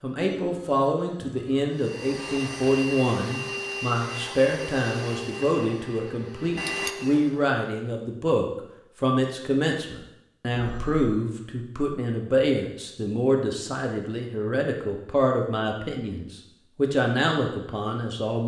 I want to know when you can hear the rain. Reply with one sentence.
The rain can't be heard in this clip.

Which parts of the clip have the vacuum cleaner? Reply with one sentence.
You can hear the vacuum cleaner from 1.8 to 7.4 s.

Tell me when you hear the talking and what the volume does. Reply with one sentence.
The talking can be heard from 0.0 to 18.4 s, at a steady volume.